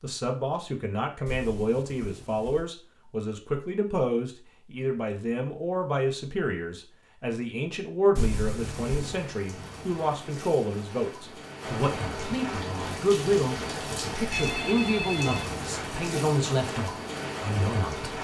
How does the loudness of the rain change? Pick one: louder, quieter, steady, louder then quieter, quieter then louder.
louder.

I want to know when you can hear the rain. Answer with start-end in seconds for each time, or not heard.
8.5-18.1.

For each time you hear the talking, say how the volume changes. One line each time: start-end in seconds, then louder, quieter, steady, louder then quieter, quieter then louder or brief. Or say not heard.
0.0-18.1 steady.